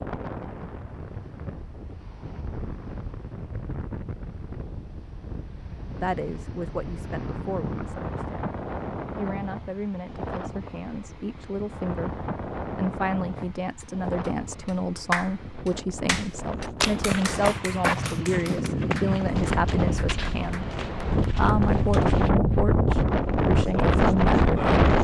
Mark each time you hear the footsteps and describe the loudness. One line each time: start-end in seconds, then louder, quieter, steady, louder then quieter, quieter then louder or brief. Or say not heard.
16.8-22.3 quieter.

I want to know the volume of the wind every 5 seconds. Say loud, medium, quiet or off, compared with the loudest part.
quiet, quiet, quiet, medium, loud.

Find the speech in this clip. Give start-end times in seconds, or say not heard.
6.0-20.7, 21.4-24.8.